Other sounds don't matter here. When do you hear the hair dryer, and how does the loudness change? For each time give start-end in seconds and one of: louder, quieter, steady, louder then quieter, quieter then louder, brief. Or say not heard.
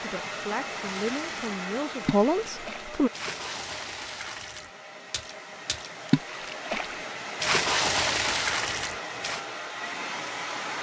0.0-10.7 quieter then louder.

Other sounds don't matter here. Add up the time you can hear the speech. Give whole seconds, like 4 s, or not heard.
3 s.